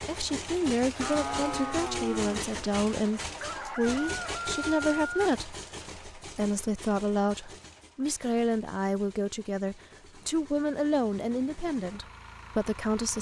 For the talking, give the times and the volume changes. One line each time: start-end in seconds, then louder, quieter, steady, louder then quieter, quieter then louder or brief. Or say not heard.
0.1-13.1 steady.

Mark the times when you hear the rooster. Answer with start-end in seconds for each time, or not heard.
3.4-5.3.